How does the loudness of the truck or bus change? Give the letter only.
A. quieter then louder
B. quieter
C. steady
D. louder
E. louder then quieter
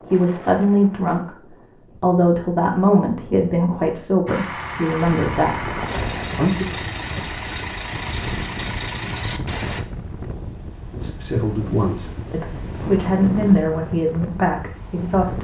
C.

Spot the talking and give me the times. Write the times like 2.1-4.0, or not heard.
0.0-6.7, 10.9-15.3.